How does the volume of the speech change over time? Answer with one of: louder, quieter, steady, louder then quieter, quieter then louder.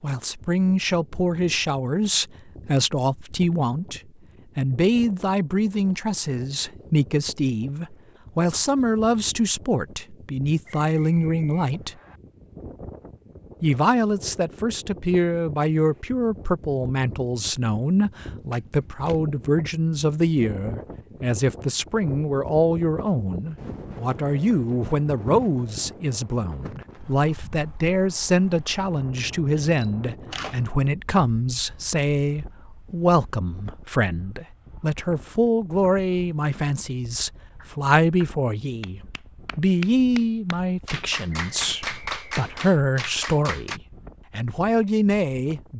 steady.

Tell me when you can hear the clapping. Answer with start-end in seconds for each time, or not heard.
37.5-43.8.